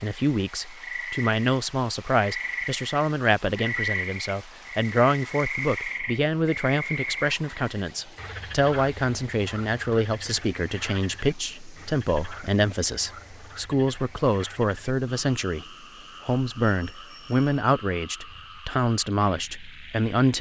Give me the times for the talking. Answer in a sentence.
The talking can be heard from 0.0 to 15.7 s and from 16.2 to 20.3 s.